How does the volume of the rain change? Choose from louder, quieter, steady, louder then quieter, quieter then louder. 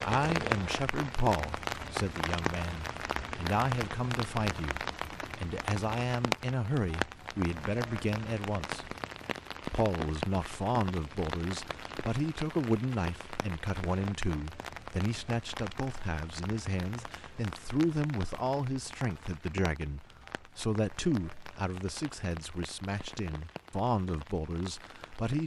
quieter.